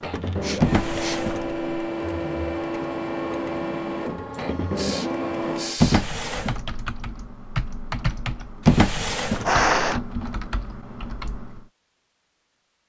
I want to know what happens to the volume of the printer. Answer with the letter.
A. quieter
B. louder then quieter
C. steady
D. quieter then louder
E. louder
C.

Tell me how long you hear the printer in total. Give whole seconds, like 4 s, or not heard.
6 s.